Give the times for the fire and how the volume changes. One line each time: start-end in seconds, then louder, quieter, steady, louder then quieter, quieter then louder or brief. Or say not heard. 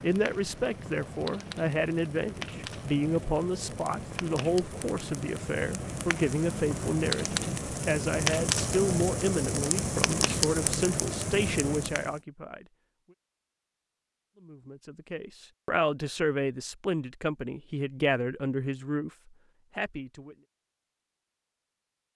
0.0-12.2 louder.